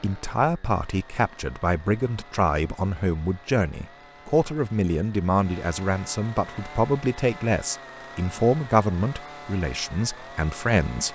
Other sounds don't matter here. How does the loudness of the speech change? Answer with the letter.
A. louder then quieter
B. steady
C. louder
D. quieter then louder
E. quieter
B.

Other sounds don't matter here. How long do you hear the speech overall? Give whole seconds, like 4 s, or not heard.
11 s.